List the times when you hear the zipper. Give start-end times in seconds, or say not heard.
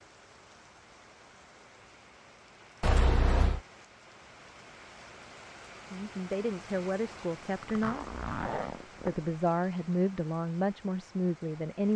2.8-3.6, 7.6-9.2.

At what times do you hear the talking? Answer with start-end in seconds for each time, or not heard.
5.8-8.1, 9.1-11.9.